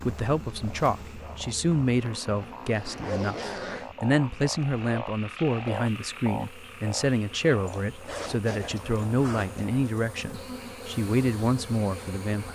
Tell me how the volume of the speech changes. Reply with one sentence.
The loudness of the speech stays about the same.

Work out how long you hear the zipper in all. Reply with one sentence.
The zipper can be heard for 4 seconds in total.